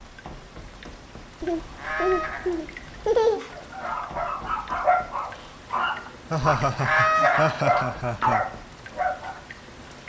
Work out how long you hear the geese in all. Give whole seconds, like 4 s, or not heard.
2 s.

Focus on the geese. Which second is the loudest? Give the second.
7 s.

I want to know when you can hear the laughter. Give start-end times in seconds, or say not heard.
1.4-3.4, 6.3-8.4.